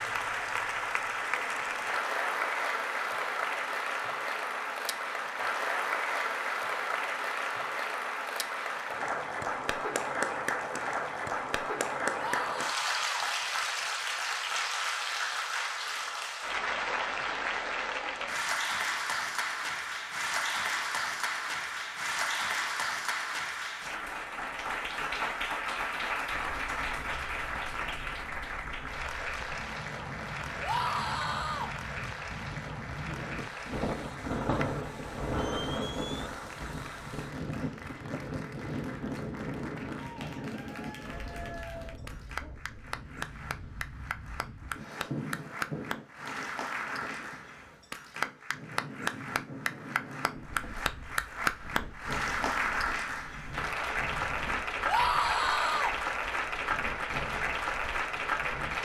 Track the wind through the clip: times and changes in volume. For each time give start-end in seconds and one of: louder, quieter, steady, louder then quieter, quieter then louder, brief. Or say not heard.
26.3-58.7 louder then quieter.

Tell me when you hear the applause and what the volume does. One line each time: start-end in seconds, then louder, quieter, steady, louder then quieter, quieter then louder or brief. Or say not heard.
0.0-58.7 quieter then louder.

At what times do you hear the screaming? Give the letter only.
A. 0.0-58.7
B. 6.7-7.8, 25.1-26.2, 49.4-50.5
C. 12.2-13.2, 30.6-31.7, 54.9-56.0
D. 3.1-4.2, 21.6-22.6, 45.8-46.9
C.